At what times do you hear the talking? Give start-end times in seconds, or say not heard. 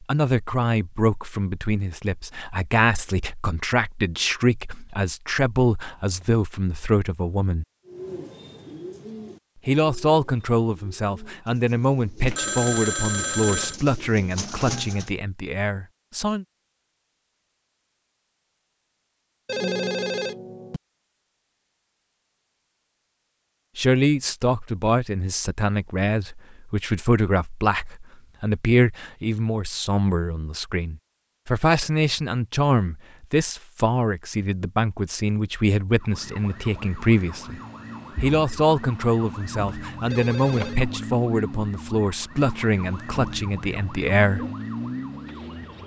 0.0-7.7, 9.7-16.4, 23.8-37.6, 38.2-44.5.